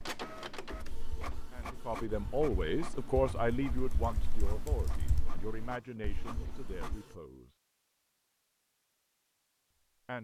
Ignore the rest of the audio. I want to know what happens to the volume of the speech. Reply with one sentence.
The loudness of the speech goes down.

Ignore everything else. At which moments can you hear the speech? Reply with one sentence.
The speech can be heard from 1.5 to 7.5 s.